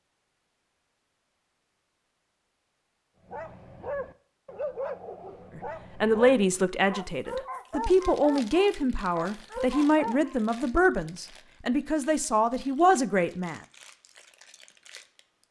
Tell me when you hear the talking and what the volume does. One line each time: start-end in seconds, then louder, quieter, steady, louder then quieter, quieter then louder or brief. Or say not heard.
5.5-13.6 steady.